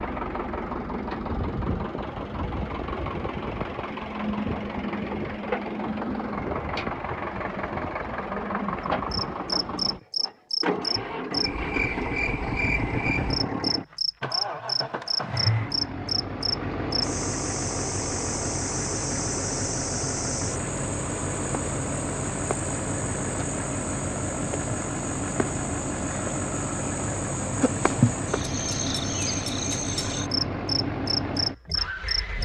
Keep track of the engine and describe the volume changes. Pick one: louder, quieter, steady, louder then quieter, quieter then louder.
steady.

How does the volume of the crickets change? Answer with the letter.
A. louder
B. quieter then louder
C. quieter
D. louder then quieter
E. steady
B.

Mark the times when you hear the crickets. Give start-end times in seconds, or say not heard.
9.1-32.3.